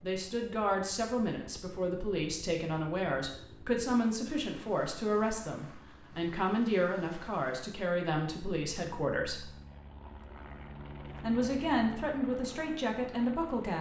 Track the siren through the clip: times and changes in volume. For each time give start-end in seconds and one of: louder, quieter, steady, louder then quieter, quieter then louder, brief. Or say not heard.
not heard.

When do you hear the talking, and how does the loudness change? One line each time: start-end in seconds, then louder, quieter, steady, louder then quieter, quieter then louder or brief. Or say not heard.
0.0-9.6 steady
11.2-13.7 brief.